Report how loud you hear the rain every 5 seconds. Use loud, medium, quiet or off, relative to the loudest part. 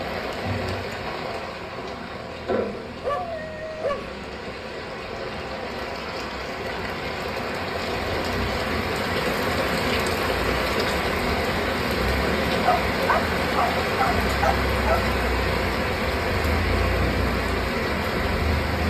medium, loud, loud, loud.